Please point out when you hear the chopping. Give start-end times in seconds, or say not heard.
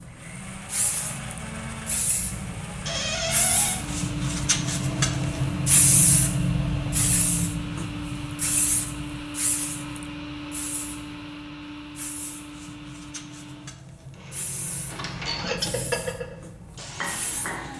not heard.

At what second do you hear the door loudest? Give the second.
3 s.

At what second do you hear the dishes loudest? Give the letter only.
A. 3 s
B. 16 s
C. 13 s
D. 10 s
B.